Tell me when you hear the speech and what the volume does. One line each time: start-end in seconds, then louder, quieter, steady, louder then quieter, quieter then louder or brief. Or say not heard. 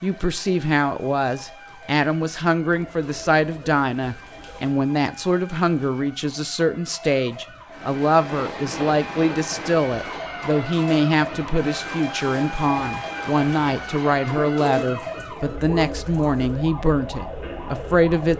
0.0-18.3 steady.